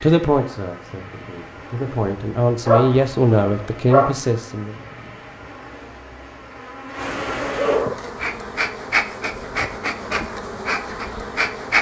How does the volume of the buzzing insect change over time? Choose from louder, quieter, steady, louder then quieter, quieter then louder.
louder.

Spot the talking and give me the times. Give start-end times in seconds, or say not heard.
0.0-4.8.